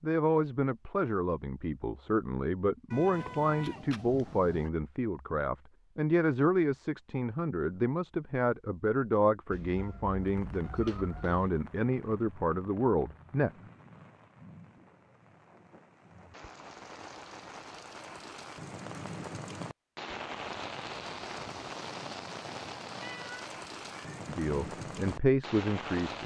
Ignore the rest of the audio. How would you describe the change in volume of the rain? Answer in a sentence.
The loudness of the rain goes up.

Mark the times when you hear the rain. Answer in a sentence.
You can hear the rain from 10.1 to 26.2 s.